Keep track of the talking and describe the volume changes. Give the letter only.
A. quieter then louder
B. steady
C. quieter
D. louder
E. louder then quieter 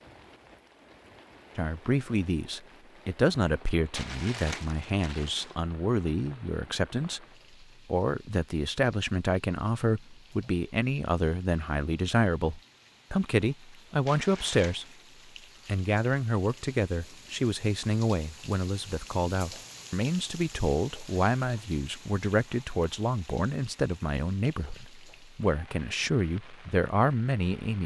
B.